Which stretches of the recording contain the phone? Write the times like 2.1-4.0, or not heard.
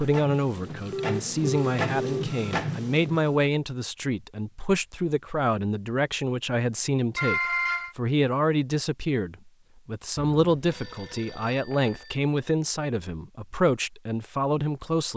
0.9-2.2, 7.2-7.9, 10.2-12.2.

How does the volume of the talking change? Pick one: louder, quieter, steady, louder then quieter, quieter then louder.
steady.